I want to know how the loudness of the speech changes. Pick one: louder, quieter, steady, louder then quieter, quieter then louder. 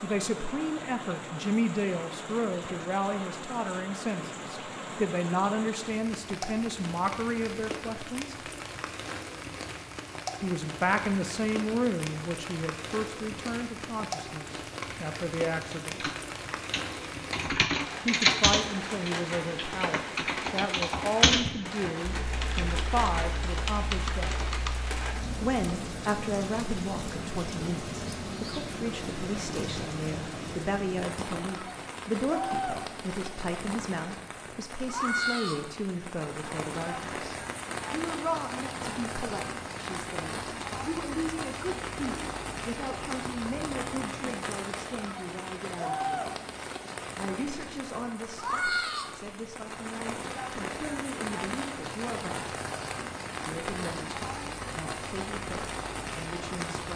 quieter.